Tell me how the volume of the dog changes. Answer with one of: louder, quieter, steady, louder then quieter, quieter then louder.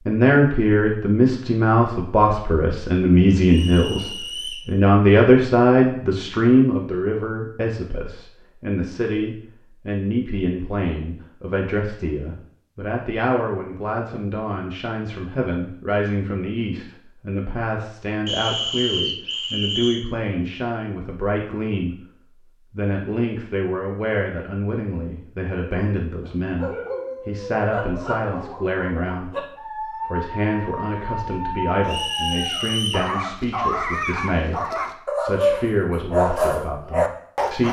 louder.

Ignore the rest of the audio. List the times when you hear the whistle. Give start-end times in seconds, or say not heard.
3.5-4.7, 18.2-20.1, 31.9-33.1.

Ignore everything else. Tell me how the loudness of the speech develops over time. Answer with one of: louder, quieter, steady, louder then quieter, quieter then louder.
quieter.